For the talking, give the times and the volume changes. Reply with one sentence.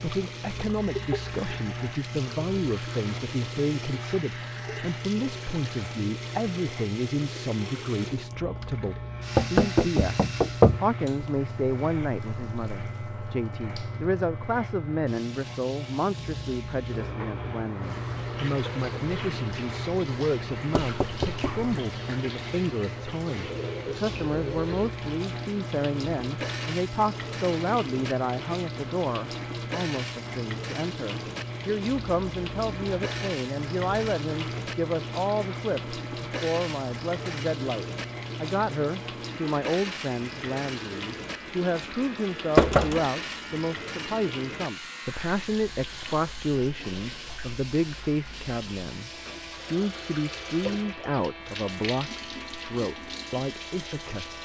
You can hear the talking from 0.0 to 54.3 s, at a steady volume.